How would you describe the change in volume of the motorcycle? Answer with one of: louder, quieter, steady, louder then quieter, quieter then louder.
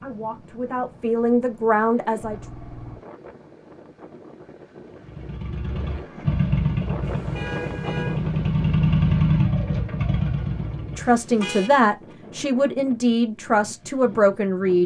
louder then quieter.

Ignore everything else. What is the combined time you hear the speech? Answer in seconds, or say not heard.
6 s.